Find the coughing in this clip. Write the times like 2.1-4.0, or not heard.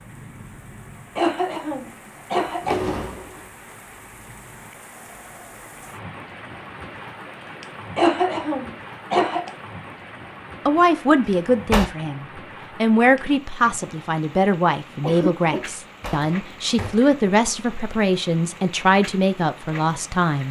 1.1-3.0, 8.0-9.5, 15.0-15.7.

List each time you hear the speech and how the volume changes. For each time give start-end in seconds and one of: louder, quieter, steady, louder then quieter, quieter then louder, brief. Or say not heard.
10.7-20.4 steady.